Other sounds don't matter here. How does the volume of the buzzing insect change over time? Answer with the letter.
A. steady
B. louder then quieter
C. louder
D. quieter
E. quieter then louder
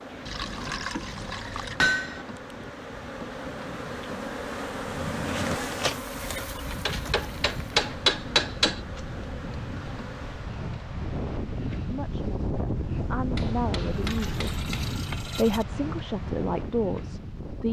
B.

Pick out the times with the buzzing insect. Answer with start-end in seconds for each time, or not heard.
0.0-10.6.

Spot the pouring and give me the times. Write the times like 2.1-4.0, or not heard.
0.2-1.8, 7.2-8.0, 13.9-15.7.